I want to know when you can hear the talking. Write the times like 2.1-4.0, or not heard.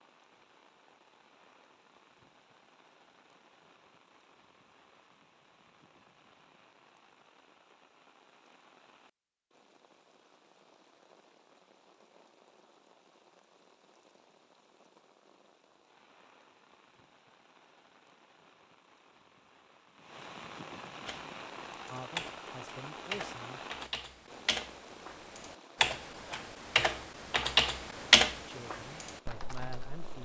21.9-23.6, 28.4-30.2.